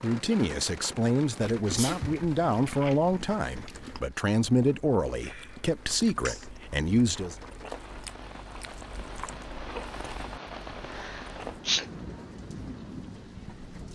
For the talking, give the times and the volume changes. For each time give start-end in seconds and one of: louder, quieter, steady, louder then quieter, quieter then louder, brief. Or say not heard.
0.0-7.3 steady.